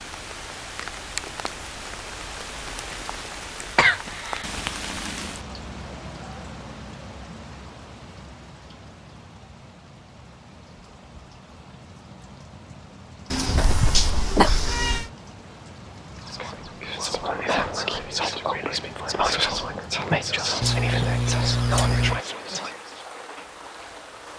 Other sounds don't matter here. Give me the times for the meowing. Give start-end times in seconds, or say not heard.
13.3-15.1.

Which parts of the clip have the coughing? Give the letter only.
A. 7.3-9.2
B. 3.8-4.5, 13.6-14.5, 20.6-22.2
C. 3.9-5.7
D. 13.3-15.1
B.